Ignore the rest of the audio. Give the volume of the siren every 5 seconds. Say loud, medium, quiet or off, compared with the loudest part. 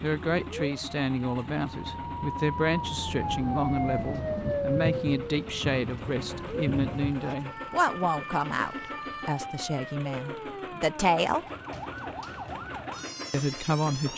loud, medium, medium.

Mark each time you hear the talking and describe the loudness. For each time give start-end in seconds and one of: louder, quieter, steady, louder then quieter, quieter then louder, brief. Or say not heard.
0.0-11.4 steady
13.3-14.1 brief.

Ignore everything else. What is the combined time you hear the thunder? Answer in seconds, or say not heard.
3 s.